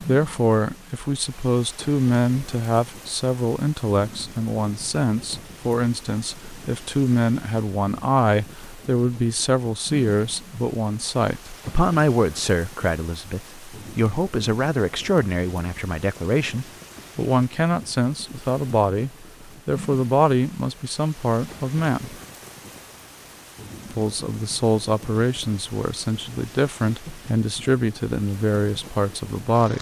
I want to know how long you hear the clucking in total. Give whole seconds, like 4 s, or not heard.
not heard.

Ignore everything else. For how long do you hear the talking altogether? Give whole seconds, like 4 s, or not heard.
28 s.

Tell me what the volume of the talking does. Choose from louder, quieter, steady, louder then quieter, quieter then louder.
steady.